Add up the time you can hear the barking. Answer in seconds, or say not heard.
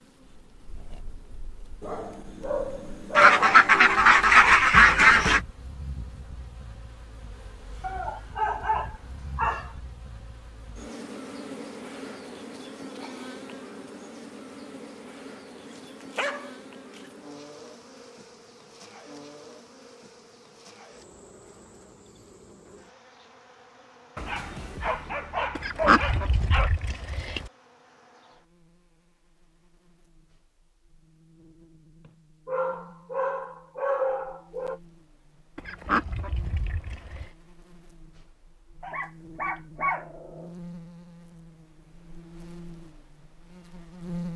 12 s.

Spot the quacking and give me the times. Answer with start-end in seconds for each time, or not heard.
3.1-5.4, 25.6-27.5, 35.5-37.2.